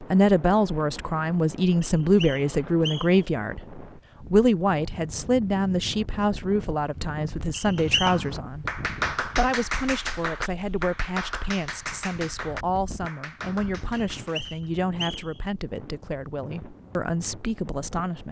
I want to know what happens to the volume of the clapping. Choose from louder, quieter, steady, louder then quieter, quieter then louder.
quieter.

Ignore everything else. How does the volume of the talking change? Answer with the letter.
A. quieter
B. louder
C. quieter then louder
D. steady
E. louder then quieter
A.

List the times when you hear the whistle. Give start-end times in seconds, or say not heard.
1.8-3.2, 7.5-8.2, 13.9-15.4.